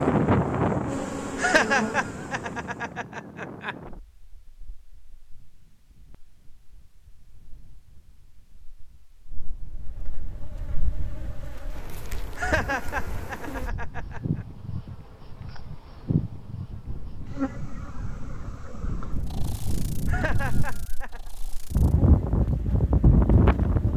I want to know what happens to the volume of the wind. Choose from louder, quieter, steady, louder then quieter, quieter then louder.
quieter then louder.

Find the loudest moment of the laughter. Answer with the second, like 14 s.
2 s.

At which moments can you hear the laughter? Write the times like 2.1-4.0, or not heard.
1.4-3.8, 12.3-14.2, 20.1-21.2.